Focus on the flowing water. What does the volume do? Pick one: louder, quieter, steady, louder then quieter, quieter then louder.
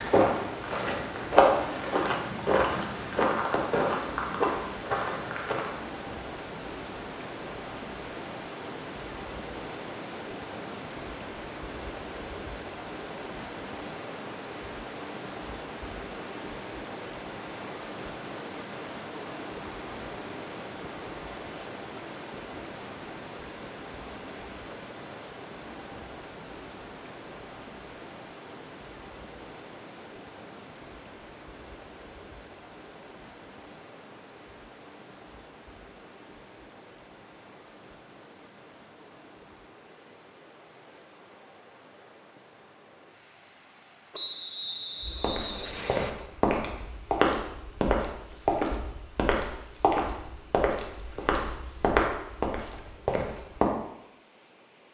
quieter.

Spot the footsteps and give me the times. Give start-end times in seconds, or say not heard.
0.0-5.8, 45.0-53.6.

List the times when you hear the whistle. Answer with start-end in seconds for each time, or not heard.
44.1-46.1.